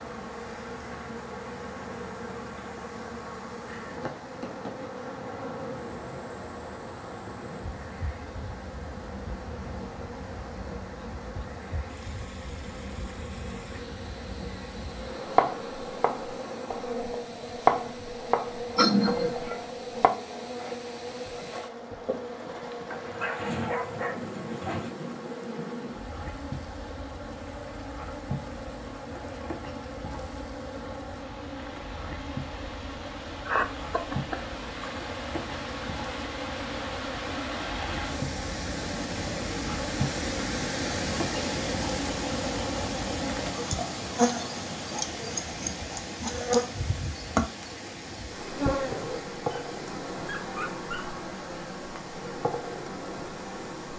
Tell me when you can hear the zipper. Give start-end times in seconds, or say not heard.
not heard.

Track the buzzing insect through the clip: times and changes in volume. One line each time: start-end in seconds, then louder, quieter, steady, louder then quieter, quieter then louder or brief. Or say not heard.
0.0-53.9 louder.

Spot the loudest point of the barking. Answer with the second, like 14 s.
24 s.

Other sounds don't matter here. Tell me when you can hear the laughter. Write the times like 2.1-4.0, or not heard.
18.8-19.6, 33.5-35.0.